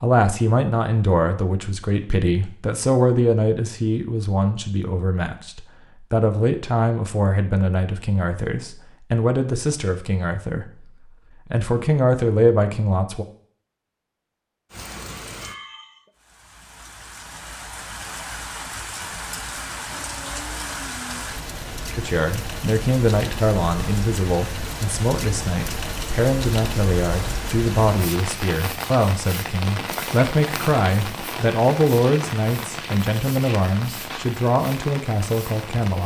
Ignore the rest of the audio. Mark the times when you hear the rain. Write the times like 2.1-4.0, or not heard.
14.7-36.0.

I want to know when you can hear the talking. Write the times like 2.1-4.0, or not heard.
0.0-10.7, 11.5-13.2, 21.9-36.0.